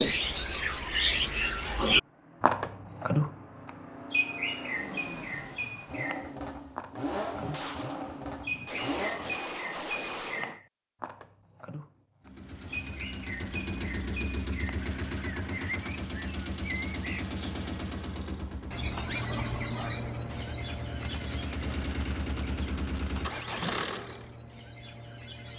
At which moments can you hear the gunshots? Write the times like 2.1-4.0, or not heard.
7.5-10.6, 20.2-23.4.